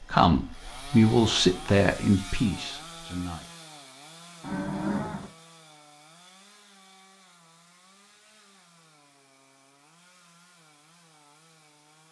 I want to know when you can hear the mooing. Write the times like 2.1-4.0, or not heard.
4.4-5.3.